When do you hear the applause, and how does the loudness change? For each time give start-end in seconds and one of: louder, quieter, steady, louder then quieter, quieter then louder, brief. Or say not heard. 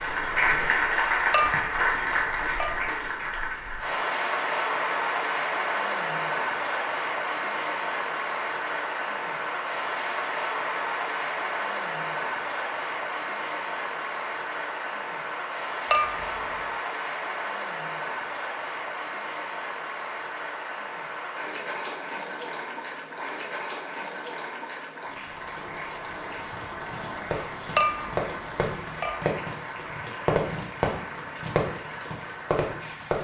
0.0-33.1 quieter.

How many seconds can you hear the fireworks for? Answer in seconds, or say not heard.
6 s.